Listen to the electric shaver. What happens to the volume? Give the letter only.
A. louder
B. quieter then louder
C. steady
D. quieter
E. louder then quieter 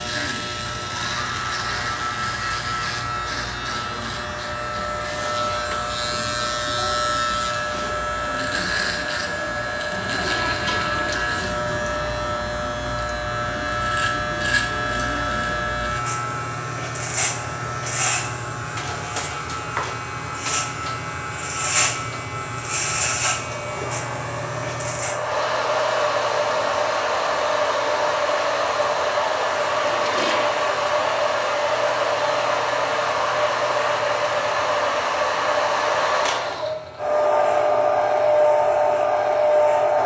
D.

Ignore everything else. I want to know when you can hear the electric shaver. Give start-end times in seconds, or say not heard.
0.0-40.0.